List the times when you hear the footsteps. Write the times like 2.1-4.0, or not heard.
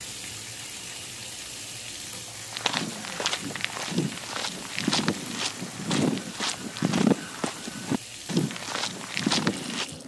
2.5-9.8.